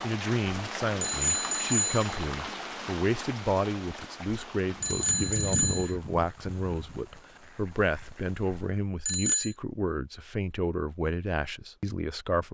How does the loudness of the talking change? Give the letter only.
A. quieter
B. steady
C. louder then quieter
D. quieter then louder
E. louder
B.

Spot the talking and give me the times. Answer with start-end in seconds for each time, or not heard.
0.0-12.4.